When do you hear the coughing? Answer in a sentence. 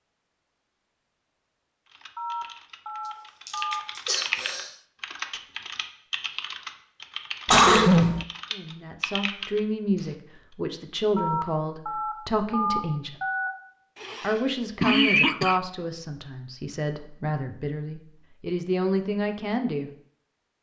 The coughing can be heard from 3.5 to 4.7 s, from 7.5 to 8.2 s and from 14.0 to 15.6 s.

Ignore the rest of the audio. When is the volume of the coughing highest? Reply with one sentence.
The loudest moment of the coughing is at 8 seconds.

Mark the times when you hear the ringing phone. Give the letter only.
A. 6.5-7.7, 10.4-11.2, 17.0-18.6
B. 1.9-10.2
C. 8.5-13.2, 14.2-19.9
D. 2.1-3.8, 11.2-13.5
D.